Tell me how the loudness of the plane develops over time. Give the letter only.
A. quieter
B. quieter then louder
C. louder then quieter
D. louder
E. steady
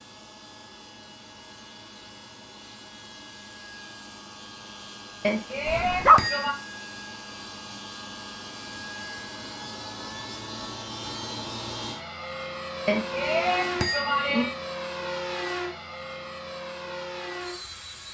D.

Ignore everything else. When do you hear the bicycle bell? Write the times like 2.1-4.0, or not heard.
5.2-6.5, 12.8-14.6.